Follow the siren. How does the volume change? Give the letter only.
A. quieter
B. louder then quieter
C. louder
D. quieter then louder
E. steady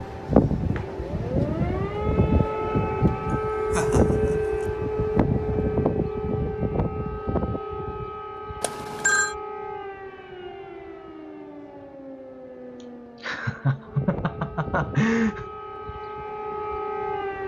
D.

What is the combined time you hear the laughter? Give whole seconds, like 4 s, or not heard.
3 s.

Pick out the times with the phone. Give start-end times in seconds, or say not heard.
8.6-9.3.